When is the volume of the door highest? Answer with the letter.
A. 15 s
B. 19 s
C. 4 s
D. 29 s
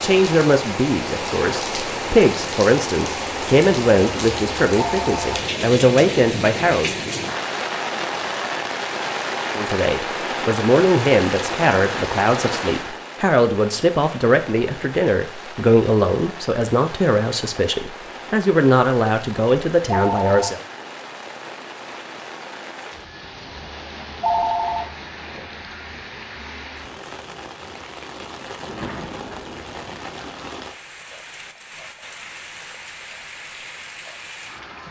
D.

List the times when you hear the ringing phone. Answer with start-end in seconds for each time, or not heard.
4.8-5.4, 19.9-20.5, 24.2-24.9.